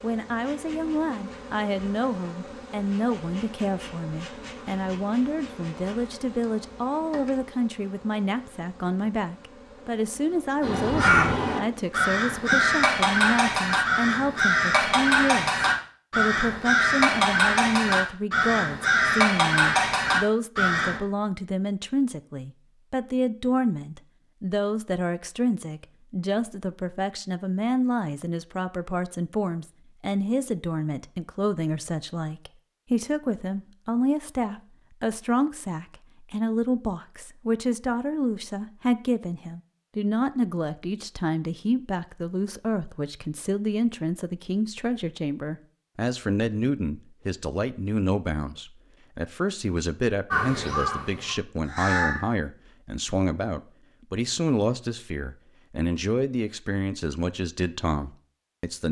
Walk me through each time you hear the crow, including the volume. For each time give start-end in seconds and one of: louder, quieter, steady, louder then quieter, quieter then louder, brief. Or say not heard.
10.6-21.0 steady
50.3-52.2 brief.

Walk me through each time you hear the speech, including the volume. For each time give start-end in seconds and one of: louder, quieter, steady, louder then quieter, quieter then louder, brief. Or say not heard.
0.0-58.8 steady.